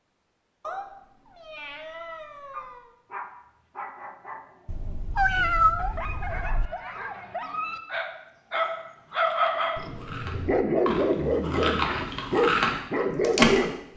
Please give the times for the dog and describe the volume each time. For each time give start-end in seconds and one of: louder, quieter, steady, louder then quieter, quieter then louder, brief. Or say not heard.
2.5-13.8 louder.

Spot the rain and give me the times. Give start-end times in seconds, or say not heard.
not heard.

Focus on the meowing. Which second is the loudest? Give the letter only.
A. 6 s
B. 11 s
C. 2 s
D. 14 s
A.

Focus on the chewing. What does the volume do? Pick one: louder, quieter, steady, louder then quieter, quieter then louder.
louder.